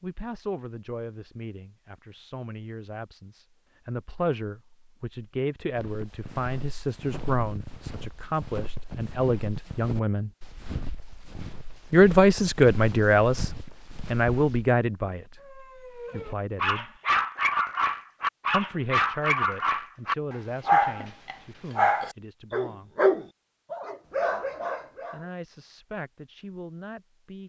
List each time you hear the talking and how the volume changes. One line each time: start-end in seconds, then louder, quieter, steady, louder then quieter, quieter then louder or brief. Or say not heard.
0.0-10.3 louder
11.9-16.9 quieter
18.5-22.9 quieter
25.1-27.4 brief.